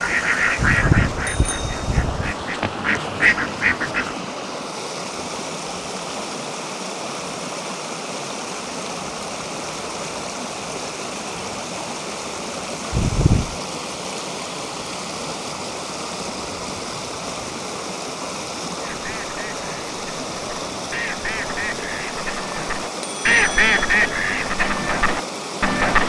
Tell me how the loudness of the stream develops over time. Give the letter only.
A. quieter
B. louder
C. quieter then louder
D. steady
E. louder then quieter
D.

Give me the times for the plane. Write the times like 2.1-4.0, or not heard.
not heard.